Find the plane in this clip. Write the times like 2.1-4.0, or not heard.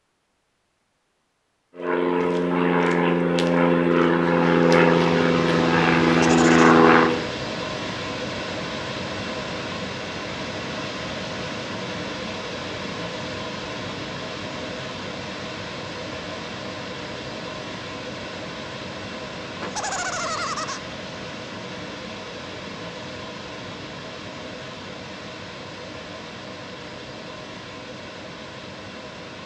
1.8-7.3.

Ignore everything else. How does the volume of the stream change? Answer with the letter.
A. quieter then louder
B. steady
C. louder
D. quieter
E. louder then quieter
D.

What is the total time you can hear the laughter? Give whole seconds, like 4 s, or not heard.
2 s.